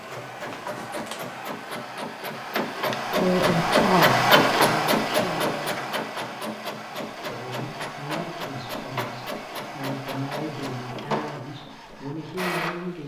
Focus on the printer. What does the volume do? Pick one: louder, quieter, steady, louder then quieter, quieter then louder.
louder then quieter.